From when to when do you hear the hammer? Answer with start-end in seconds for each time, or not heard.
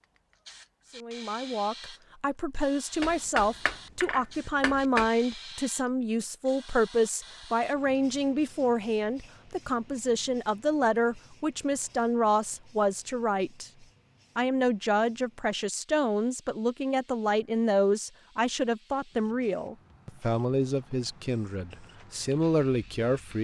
3.0-5.1.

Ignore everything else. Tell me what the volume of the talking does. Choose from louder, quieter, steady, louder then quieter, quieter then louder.
steady.